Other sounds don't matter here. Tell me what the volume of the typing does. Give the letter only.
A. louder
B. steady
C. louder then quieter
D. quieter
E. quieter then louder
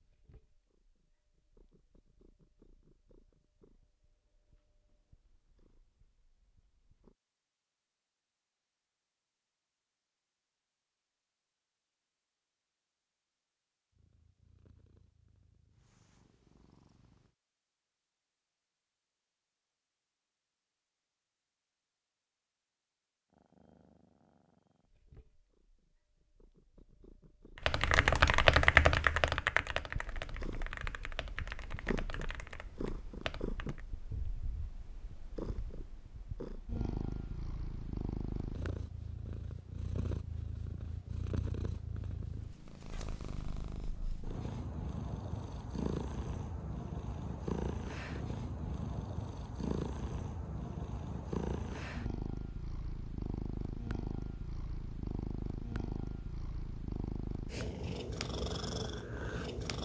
D.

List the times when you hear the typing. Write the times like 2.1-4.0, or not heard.
27.6-33.8.